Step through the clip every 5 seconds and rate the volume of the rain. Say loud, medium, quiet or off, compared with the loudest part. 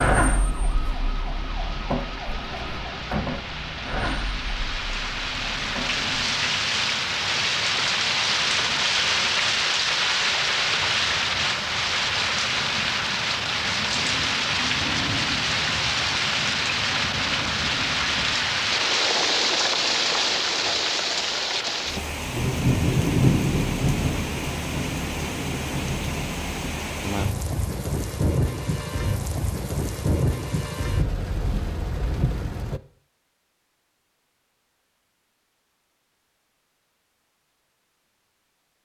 quiet, loud, loud, loud, loud, medium, medium, off.